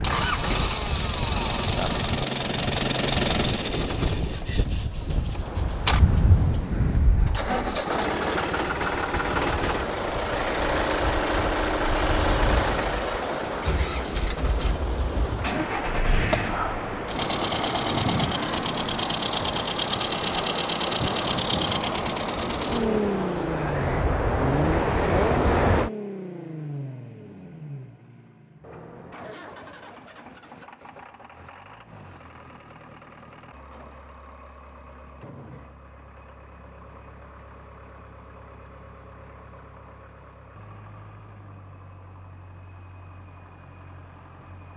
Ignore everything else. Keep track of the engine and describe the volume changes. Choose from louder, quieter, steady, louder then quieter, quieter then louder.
quieter.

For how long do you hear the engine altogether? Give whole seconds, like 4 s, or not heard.
45 s.